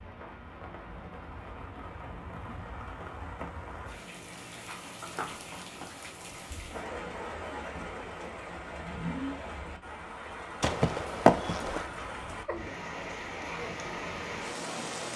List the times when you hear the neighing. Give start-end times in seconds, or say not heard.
10.6-11.8.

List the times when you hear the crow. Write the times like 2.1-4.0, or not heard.
not heard.